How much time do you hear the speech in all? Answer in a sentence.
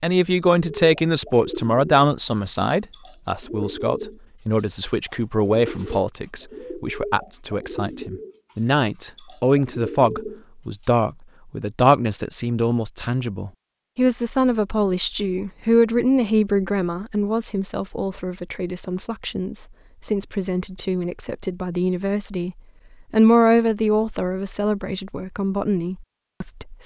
You can hear the speech for 27 seconds altogether.